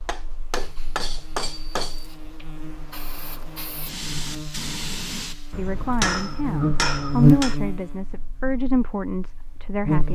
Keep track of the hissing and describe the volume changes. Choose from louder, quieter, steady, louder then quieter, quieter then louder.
louder.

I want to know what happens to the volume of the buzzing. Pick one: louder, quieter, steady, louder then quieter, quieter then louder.
louder then quieter.